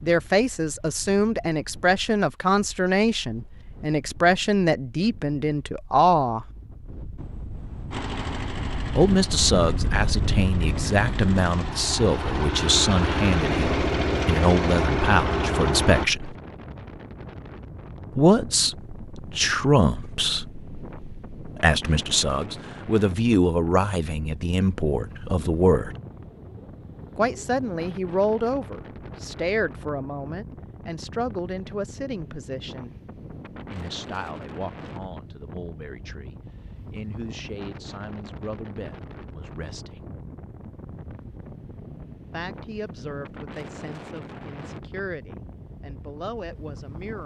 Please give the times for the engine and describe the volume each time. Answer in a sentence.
The engine can be heard from 7.9 to 16.1 s, getting louder.